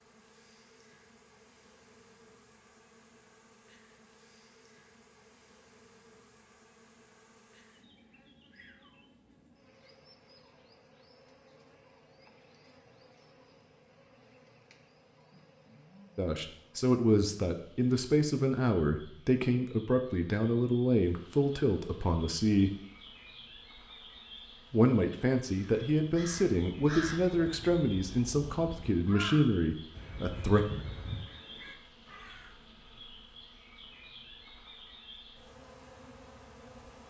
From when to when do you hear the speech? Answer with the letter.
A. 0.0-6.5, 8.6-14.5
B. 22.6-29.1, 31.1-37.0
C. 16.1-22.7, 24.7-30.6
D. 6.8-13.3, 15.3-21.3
C.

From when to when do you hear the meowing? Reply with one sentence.
You can't hear the meowing here.